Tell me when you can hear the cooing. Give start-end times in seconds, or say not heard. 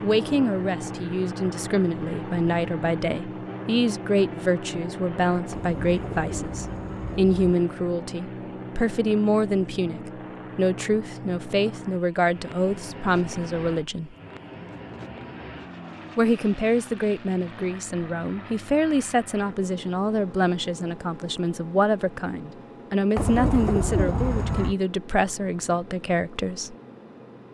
5.5-7.5, 23.1-24.8.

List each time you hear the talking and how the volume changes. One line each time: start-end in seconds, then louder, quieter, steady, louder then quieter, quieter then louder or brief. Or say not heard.
0.0-14.2 steady
16.1-26.8 steady.